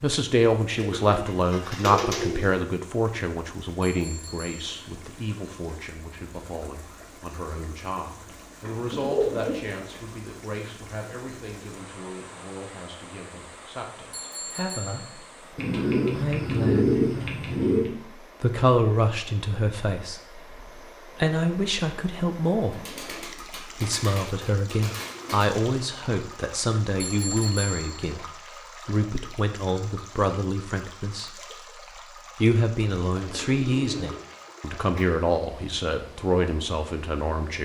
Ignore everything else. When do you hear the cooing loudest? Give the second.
17 s.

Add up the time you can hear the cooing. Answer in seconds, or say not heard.
10 s.